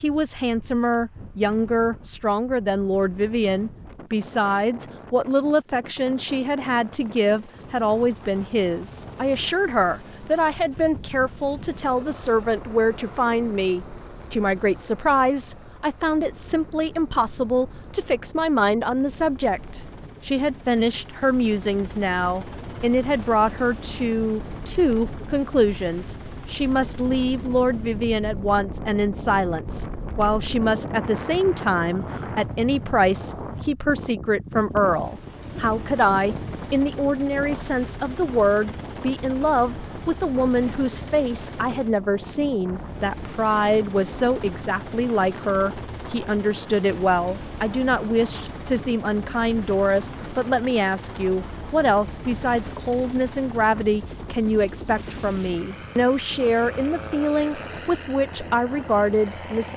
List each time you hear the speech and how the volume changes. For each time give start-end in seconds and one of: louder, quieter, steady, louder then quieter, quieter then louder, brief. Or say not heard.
0.0-59.7 steady.